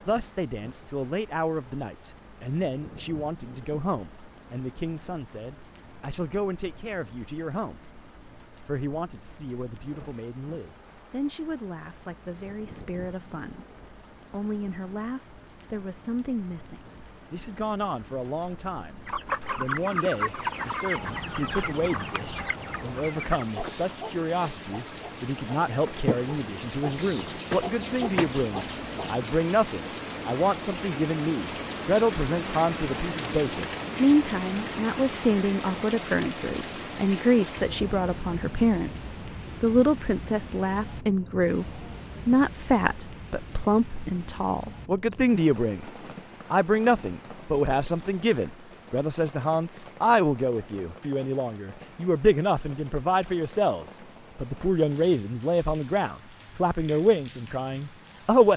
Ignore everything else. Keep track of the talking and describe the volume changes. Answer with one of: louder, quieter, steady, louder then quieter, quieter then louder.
louder.